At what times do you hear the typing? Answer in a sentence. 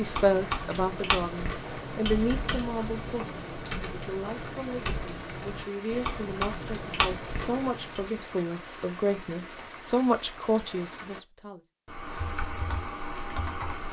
You can hear the typing from 0.0 to 8.1 s and from 11.8 to 13.8 s.